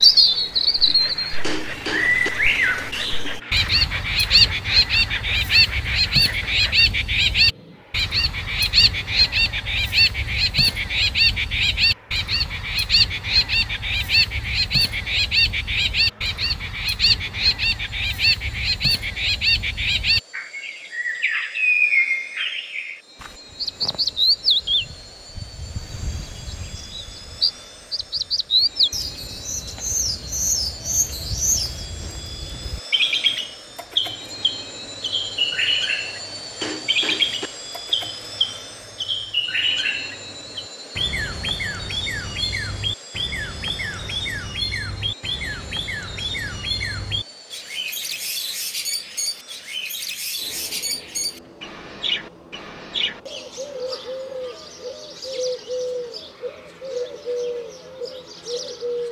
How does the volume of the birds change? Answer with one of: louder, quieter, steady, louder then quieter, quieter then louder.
quieter.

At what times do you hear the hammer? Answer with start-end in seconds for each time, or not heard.
1.4-2.3, 36.6-37.5.